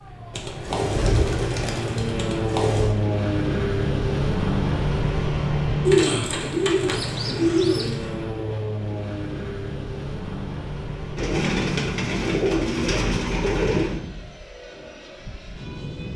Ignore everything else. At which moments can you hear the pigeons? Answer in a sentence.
The pigeons can be heard from 0.3 to 2.9 s, from 5.8 to 8.1 s and from 11.2 to 14.0 s.